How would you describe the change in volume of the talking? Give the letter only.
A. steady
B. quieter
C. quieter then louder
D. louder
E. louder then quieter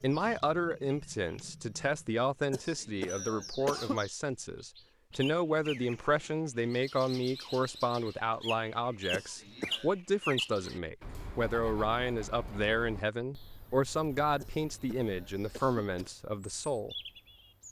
A.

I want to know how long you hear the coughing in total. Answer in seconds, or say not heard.
4 s.